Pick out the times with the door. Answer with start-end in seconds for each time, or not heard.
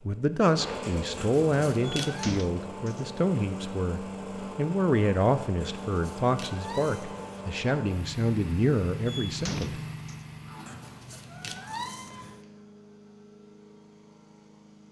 2.0-3.0, 9.1-10.2.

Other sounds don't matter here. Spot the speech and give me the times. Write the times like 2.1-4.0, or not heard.
0.0-9.8.